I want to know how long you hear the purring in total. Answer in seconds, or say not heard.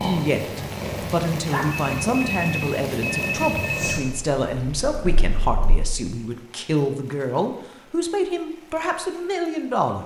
6 s.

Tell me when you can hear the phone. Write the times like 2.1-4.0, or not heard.
1.4-4.0.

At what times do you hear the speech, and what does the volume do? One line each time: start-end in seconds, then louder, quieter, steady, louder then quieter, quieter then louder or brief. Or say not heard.
0.0-10.0 steady.